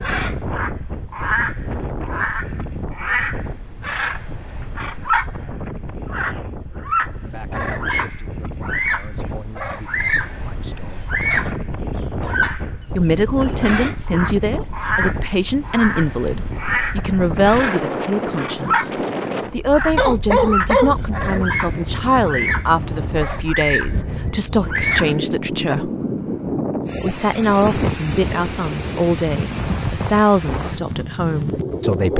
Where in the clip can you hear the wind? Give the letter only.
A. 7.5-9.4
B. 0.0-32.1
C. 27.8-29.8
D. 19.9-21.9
B.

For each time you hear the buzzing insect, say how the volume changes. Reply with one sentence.
You can't hear the buzzing insect here.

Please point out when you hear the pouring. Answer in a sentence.
The pouring can't be heard in this clip.